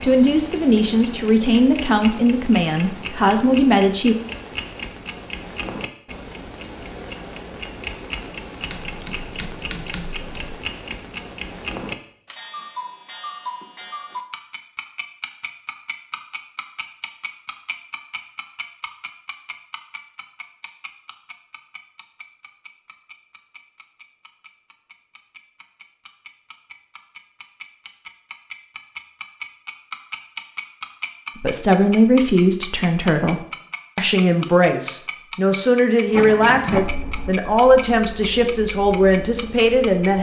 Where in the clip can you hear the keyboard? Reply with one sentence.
The keyboard can be heard from 8.6 to 10.6 s.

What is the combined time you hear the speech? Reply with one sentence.
The speech can be heard for 13 seconds in total.